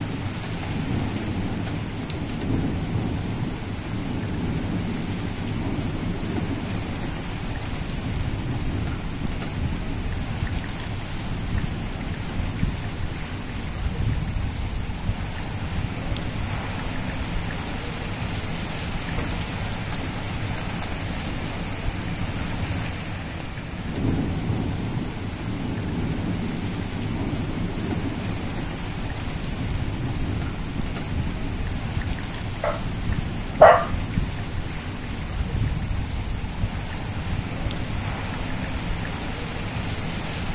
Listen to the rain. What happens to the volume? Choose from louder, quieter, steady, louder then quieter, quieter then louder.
steady.